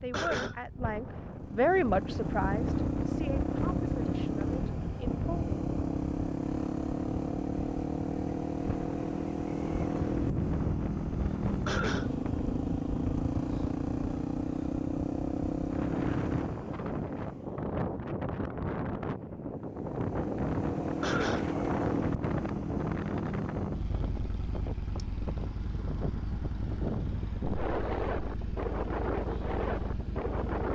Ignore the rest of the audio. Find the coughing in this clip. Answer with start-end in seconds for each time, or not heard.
0.1-0.6, 11.7-12.1, 21.0-21.4.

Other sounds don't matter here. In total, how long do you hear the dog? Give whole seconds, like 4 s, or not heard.
not heard.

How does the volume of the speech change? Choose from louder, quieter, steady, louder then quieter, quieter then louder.
louder then quieter.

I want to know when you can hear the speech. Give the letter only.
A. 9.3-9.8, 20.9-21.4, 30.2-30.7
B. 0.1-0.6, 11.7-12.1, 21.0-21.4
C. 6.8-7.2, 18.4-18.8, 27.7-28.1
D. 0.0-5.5
D.